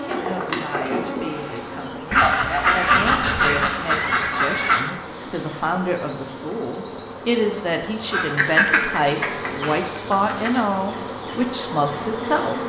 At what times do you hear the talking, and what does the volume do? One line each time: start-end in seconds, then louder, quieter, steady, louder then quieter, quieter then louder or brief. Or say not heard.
0.0-12.6 louder.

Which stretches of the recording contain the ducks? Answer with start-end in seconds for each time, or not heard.
2.1-4.8, 8.1-10.5.